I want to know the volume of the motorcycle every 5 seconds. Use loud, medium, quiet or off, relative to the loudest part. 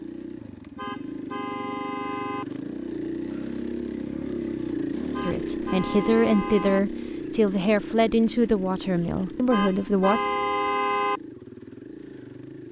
loud, loud, medium.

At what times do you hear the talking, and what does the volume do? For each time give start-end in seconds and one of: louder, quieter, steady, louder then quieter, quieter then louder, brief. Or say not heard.
5.2-10.2 steady.